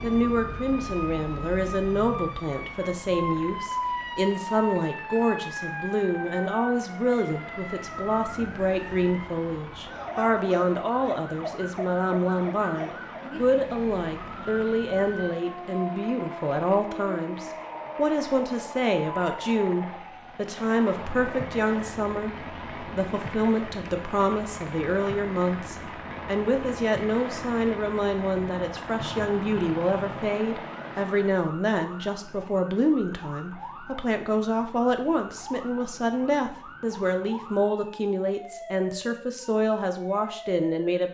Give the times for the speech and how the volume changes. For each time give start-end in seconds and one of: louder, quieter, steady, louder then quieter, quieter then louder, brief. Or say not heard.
0.0-41.0 steady.